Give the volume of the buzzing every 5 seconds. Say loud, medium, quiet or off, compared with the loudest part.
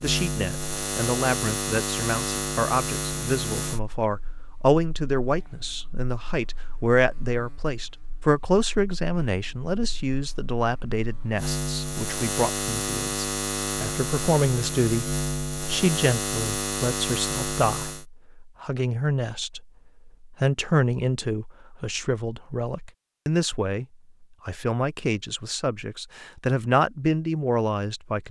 loud, quiet, loud, loud, off, off.